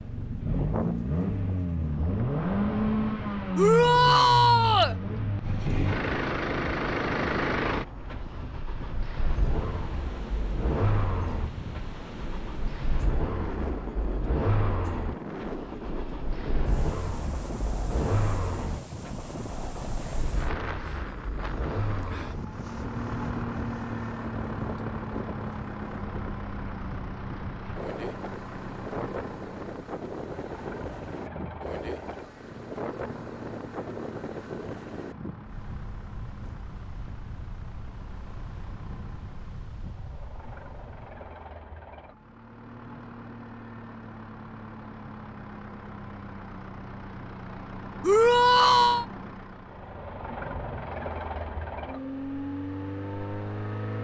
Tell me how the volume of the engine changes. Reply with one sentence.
The loudness of the engine goes down, then up.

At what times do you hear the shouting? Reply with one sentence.
You can hear the shouting from 3.5 to 5.0 s and from 48.0 to 49.0 s.